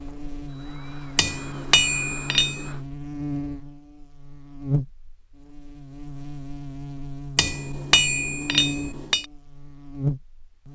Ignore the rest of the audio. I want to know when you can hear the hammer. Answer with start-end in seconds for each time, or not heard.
1.1-2.7, 7.3-9.2.